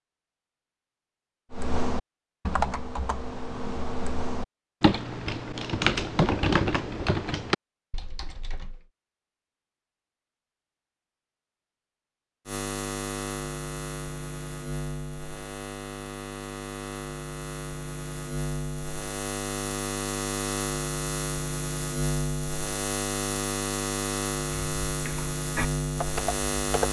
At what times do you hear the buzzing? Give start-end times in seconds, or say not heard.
12.4-26.8.